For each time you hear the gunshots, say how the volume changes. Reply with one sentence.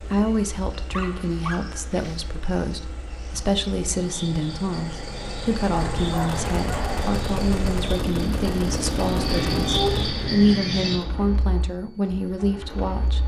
The gunshots can be heard from 5.7 to 10.4 s, at a steady volume.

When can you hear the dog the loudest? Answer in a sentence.
The loudest moment of the dog is at 10 seconds.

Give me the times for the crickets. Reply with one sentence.
The crickets can be heard from 0.0 to 11.0 s.